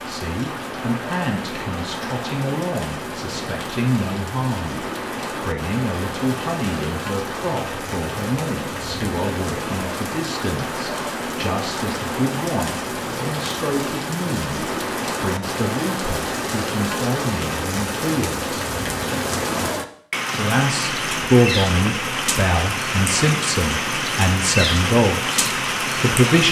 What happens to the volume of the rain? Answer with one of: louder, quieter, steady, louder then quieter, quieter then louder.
louder.